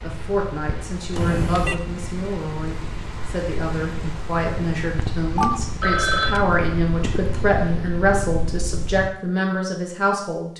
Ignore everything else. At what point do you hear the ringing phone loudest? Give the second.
6 s.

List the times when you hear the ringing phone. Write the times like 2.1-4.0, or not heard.
1.1-1.8, 5.3-6.5.